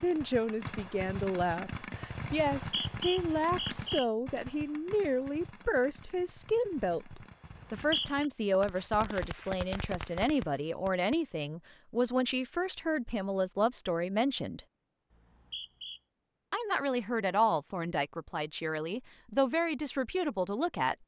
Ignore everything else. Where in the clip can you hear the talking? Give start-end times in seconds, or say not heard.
0.0-14.6, 16.5-20.9.